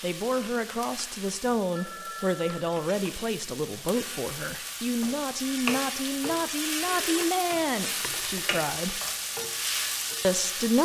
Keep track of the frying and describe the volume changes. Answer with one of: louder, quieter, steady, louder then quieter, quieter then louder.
louder.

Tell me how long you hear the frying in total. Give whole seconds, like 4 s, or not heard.
11 s.